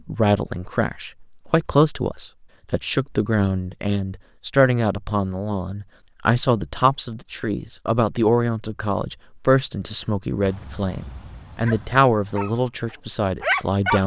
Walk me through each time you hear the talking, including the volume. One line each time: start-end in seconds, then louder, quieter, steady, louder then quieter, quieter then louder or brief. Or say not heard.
0.1-14.0 steady.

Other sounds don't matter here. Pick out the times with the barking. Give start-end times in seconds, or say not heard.
10.4-14.0.